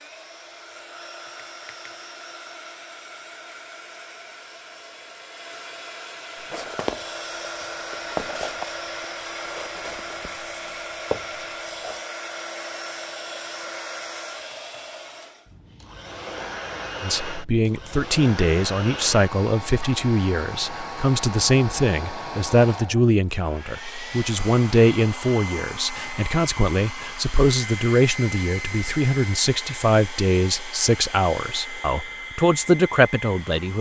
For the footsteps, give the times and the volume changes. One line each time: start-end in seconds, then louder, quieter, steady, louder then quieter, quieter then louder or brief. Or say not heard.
6.3-12.0 quieter then louder.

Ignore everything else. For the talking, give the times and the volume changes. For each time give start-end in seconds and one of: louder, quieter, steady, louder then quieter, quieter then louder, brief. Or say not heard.
17.0-33.7 steady.